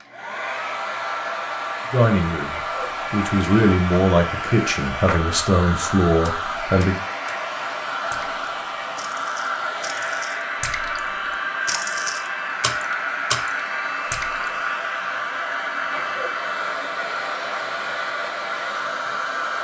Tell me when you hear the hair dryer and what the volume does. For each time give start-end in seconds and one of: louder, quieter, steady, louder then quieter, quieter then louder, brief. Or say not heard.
0.0-19.5 steady.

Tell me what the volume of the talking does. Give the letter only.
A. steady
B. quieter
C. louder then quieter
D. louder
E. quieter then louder
D.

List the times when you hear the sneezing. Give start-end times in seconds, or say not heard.
2.5-3.0, 15.9-16.4.